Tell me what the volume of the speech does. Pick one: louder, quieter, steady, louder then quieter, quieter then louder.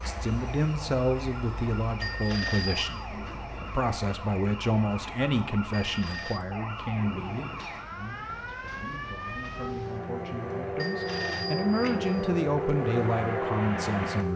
quieter then louder.